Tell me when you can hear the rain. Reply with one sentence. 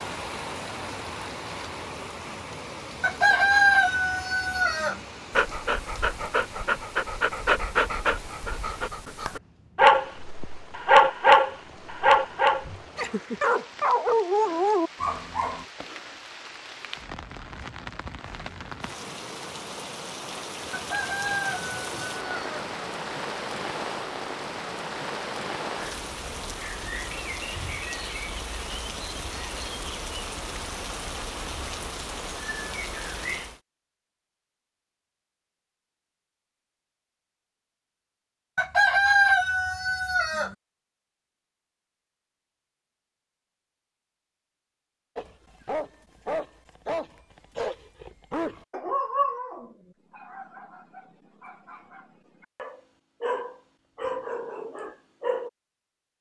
The rain can be heard from 0.0 to 33.6 s.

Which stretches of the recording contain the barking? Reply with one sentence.
The barking can be heard from 5.3 to 15.7 s and from 45.1 to 55.5 s.